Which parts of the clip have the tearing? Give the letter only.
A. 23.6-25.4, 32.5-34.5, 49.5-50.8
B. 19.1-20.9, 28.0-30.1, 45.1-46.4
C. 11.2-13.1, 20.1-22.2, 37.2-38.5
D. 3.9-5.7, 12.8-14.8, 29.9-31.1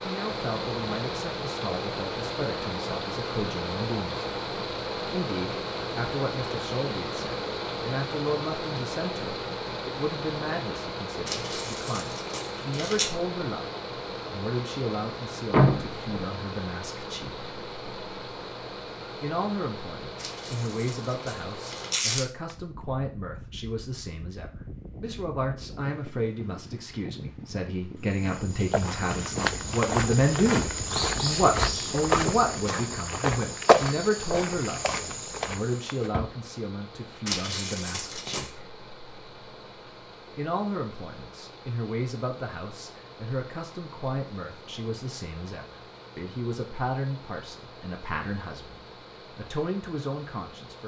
C.